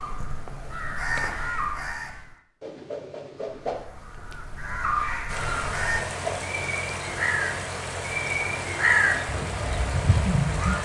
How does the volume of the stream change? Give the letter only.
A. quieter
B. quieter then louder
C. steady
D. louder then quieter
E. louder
C.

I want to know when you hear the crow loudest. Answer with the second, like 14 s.
9 s.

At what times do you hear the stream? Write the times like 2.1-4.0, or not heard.
5.2-10.8.